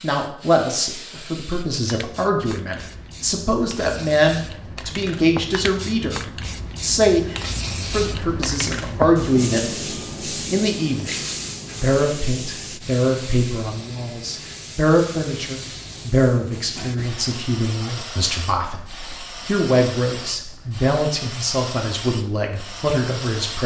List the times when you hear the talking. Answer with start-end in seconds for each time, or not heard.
0.0-6.2, 6.8-9.7, 10.4-11.2, 11.8-23.6.